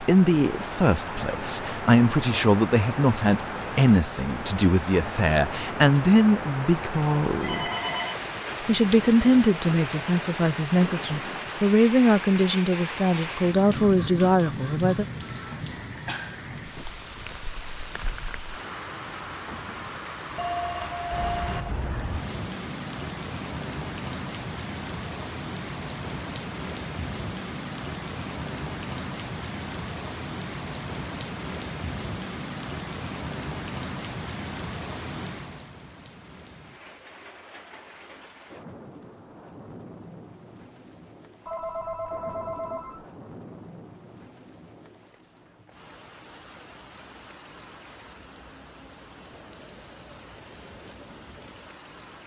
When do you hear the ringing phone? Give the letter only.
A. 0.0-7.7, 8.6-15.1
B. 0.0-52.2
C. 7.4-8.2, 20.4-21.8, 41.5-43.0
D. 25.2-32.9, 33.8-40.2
C.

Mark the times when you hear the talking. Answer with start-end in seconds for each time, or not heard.
0.0-7.7, 8.6-15.1.